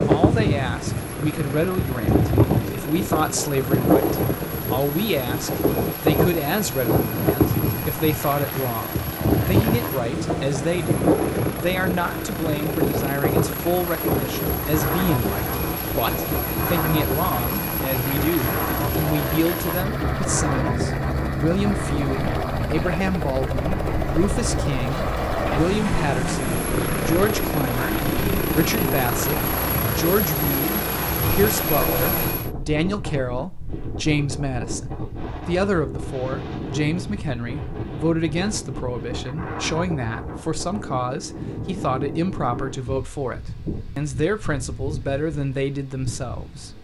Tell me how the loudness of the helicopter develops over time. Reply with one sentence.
The volume of the helicopter goes up.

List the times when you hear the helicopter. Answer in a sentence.
You can hear the helicopter from 0.0 to 32.5 s.